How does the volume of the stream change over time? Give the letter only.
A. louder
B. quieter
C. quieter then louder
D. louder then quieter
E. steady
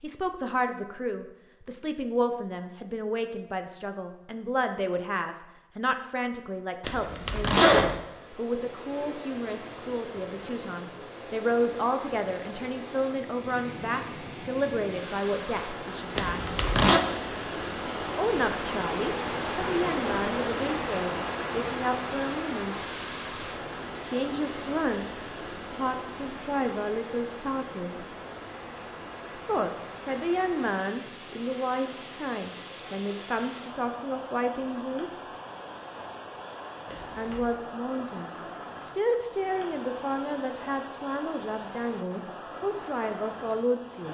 D.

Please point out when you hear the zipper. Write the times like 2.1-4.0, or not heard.
6.8-8.0, 16.1-17.0, 36.9-37.5.